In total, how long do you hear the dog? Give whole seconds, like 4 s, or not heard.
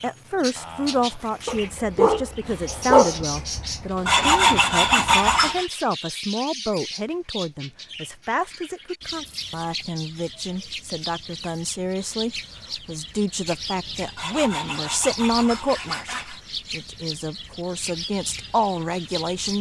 3 s.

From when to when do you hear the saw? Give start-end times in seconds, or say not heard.
4.0-5.7, 14.2-16.4.